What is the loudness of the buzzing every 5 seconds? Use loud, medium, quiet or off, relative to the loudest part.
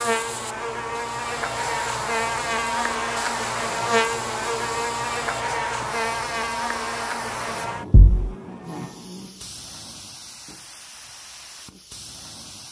loud, loud, off.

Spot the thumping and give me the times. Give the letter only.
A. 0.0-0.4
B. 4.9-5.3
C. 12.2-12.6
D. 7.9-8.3
D.